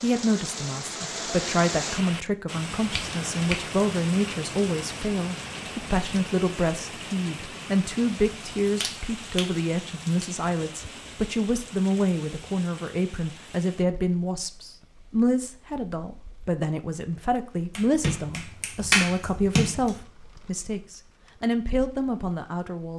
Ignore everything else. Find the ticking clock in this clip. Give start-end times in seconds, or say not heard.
not heard.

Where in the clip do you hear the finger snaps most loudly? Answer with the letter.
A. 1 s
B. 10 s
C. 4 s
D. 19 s
D.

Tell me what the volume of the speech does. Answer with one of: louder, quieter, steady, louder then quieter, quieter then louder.
steady.